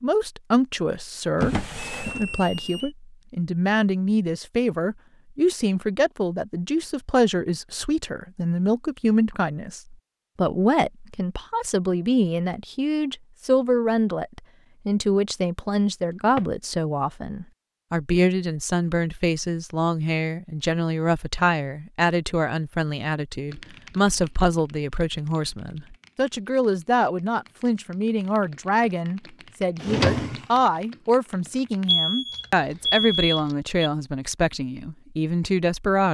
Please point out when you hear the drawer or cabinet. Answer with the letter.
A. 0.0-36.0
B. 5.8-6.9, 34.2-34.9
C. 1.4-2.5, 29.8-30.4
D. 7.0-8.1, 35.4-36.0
C.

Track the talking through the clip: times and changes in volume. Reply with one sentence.
You can hear the talking from 0.0 to 36.0 s, at a steady volume.